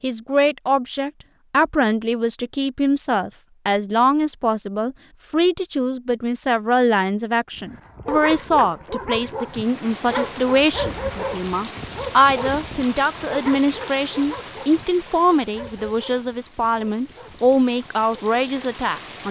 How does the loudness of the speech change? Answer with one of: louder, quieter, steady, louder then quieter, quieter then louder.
steady.